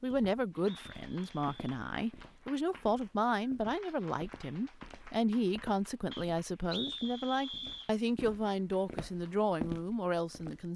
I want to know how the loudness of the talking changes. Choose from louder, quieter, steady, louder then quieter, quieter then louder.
steady.